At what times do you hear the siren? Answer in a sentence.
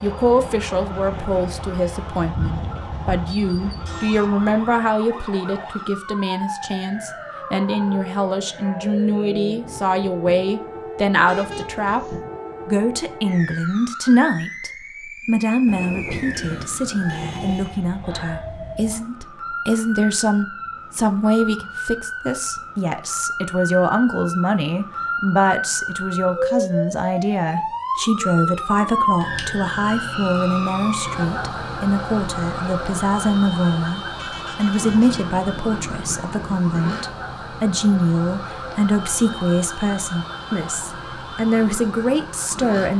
You can hear the siren from 0.0 to 42.9 s.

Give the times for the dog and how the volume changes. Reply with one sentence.
The dog can't be heard in this clip.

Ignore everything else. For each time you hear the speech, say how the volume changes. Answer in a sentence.
The speech can be heard from 0.0 to 42.9 s, at a steady volume.